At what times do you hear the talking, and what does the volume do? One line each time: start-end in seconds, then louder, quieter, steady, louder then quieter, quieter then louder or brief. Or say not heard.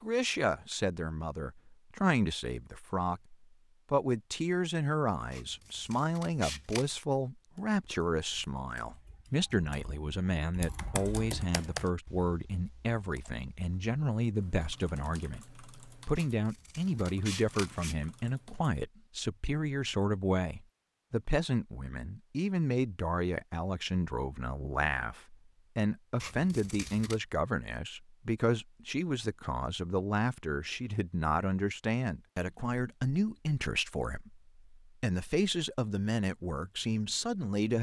0.0-37.7 steady.